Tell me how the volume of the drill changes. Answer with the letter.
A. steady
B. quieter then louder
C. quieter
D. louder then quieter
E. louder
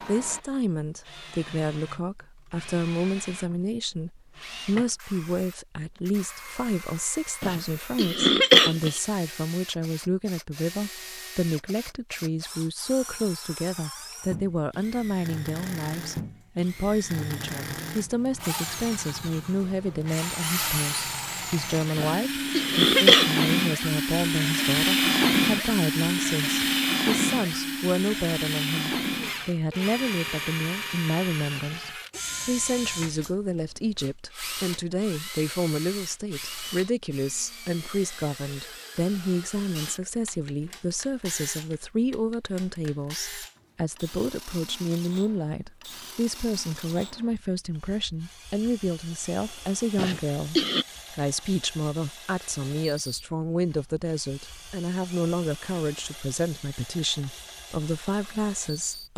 D.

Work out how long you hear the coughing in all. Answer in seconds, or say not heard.
4 s.